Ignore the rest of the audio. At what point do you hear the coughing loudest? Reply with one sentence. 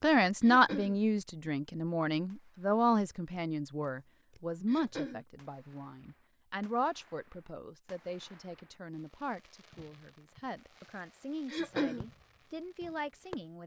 The volume of the coughing peaks at 12 seconds.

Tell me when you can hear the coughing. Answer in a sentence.
The coughing can be heard from 0.4 to 1.0 s, from 4.7 to 5.2 s and from 11.5 to 12.1 s.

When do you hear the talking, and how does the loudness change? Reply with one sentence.
You can hear the talking from 0.0 to 13.6 s, getting quieter.